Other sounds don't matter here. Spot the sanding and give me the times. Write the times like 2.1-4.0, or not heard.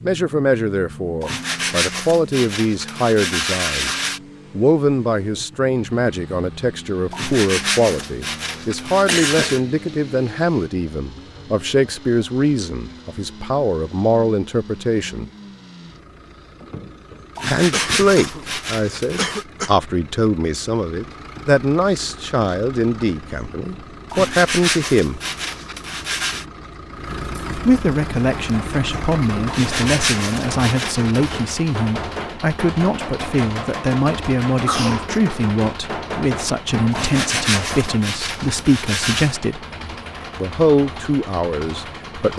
1.2-4.2, 7.1-9.6, 17.4-19.4, 24.1-26.4, 29.4-31.4, 36.9-39.4.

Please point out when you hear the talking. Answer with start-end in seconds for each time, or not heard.
0.0-15.3, 17.4-25.2, 27.6-39.6, 40.4-42.3.